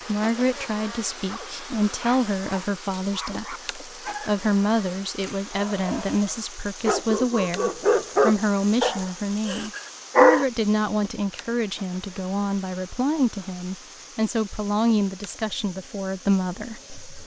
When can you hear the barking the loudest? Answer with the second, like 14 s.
10 s.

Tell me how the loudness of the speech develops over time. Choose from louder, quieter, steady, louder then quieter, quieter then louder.
steady.